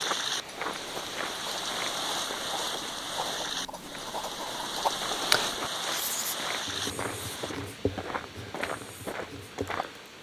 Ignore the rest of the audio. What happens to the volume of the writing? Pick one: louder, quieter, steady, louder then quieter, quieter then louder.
louder then quieter.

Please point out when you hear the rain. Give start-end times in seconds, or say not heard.
0.0-7.5.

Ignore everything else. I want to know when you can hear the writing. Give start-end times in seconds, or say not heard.
0.3-9.8.